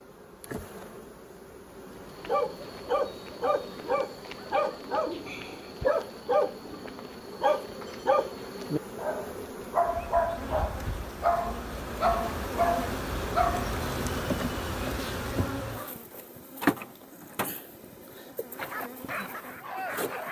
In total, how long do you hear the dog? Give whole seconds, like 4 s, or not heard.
13 s.